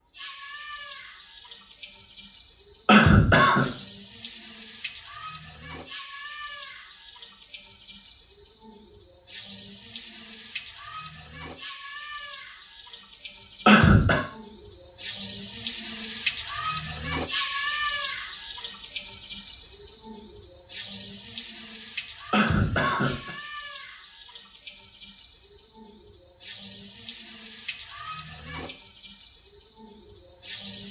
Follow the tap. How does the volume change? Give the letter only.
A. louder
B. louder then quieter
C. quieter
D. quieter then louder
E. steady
B.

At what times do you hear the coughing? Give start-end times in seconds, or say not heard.
2.9-3.7, 13.7-14.2, 22.3-23.4.